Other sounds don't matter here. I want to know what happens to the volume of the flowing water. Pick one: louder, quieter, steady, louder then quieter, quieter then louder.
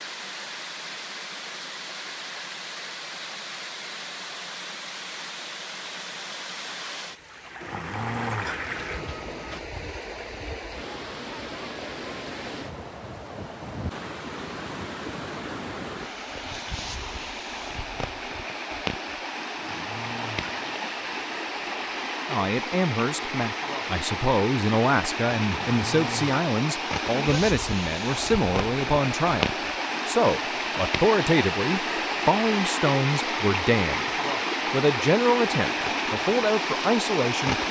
louder.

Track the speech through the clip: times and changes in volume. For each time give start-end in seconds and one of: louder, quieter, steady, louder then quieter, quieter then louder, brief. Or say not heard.
22.3-34.1 steady
34.7-37.6 brief.